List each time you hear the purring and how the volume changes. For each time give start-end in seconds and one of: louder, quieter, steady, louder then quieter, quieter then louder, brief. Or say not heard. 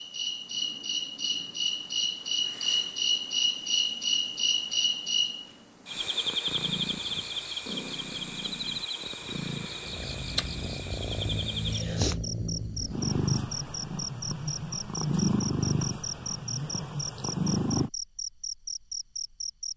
6.0-17.9 louder.